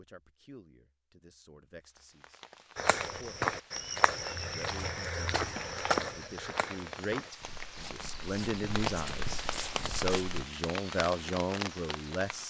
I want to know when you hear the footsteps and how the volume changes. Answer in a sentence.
You can hear the footsteps from 2.8 to 10.4 s, getting quieter then louder.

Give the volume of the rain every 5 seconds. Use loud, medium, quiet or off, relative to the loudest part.
medium, loud, loud.